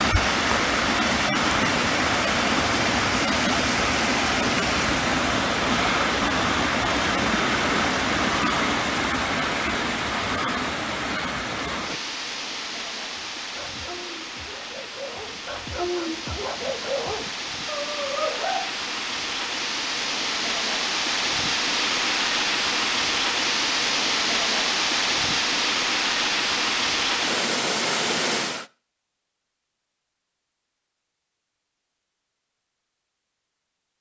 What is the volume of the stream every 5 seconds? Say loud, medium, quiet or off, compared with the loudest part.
loud, loud, medium, medium, loud, loud, off.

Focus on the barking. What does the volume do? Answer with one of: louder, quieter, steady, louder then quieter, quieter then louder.
louder.